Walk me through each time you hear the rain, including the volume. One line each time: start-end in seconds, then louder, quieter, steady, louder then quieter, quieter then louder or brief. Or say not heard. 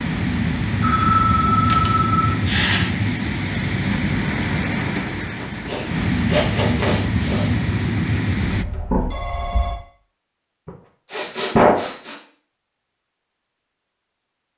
0.0-8.7 steady.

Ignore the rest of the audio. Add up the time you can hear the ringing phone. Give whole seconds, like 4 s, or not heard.
3 s.